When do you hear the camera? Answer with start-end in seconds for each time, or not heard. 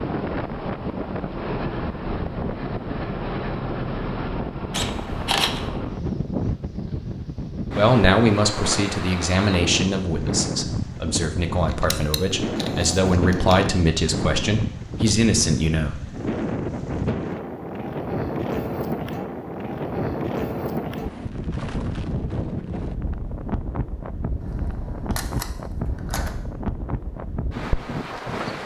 4.7-5.7, 11.7-13.7, 24.4-26.4.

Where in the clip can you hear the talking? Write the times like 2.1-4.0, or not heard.
7.8-16.1.